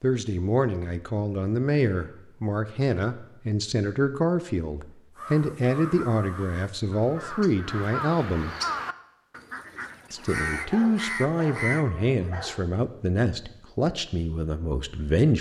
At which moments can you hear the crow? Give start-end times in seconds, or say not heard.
5.2-11.8.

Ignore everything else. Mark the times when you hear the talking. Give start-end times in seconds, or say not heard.
0.0-8.6, 10.1-15.3.